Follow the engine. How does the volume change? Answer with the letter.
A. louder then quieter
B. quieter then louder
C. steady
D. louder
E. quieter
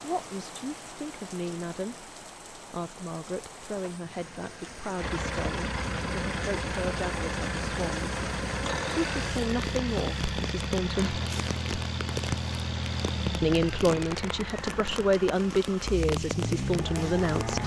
C.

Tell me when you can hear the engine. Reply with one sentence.
You can hear the engine from 5.0 to 17.6 s.